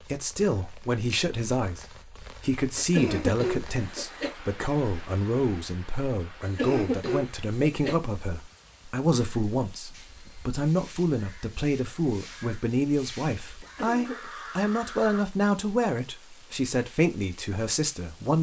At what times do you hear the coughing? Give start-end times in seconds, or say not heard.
2.8-4.3, 6.4-8.0, 13.6-14.3.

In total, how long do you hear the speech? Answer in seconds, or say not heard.
18 s.